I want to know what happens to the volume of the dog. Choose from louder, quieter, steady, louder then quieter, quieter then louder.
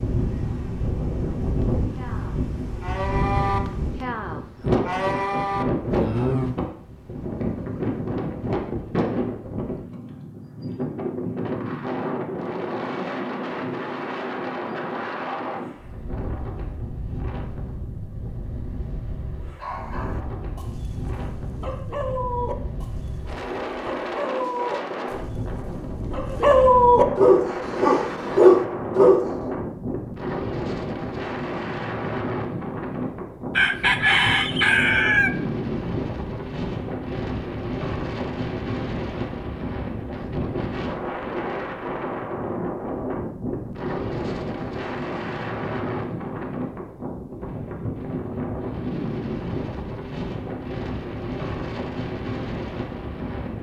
louder.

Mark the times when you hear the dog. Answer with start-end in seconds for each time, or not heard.
19.6-29.2.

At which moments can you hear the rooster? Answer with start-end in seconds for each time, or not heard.
33.5-35.3.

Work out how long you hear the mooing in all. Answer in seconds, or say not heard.
5 s.